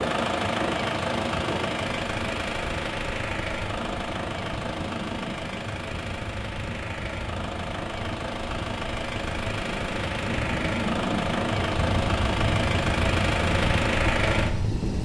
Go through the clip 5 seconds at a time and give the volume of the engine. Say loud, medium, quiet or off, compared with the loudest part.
loud, medium, loud.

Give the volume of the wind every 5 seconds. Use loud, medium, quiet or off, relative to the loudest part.
medium, medium, loud.